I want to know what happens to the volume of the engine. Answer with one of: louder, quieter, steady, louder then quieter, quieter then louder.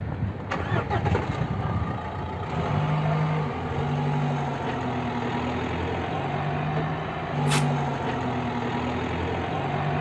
steady.